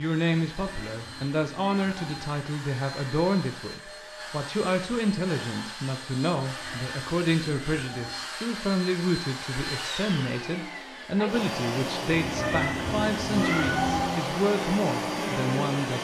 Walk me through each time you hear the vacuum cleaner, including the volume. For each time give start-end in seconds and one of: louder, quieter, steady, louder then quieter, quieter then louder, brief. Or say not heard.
0.0-15.9 louder.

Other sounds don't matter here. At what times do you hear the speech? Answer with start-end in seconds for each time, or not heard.
0.0-15.9.